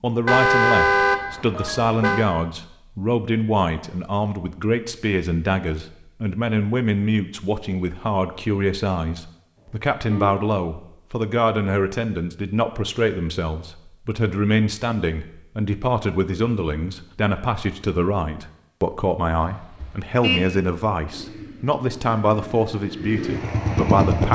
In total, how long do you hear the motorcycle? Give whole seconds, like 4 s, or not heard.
3 s.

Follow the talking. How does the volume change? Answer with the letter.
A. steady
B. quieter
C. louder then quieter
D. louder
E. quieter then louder
A.